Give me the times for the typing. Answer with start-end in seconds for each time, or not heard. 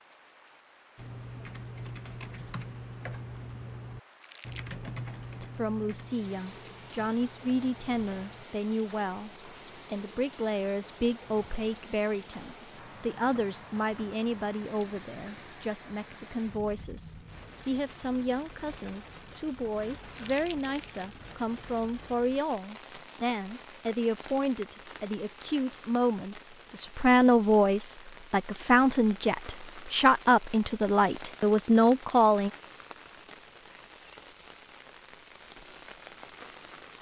0.9-8.4.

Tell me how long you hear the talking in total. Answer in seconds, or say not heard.
27 s.